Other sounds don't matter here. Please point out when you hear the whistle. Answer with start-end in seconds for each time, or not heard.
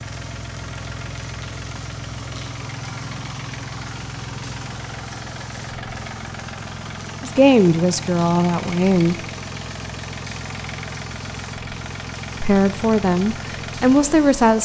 not heard.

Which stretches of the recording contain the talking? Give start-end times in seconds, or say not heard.
7.2-9.2, 12.4-14.6.